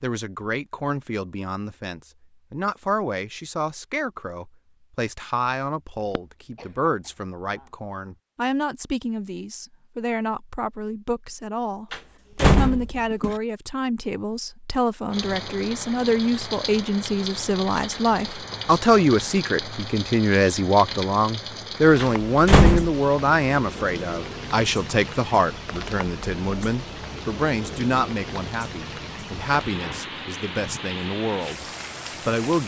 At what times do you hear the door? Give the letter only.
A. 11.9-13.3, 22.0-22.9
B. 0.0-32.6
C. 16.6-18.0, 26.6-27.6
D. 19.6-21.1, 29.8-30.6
A.